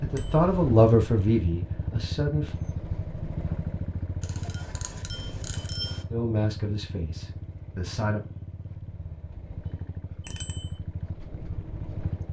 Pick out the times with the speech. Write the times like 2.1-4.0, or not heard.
0.0-2.5, 6.1-8.2.